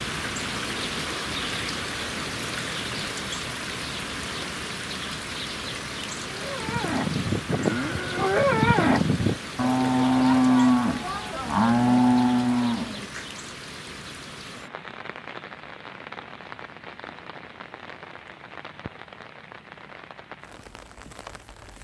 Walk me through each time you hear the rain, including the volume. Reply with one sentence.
You can hear the rain from 0.0 to 21.7 s, getting quieter.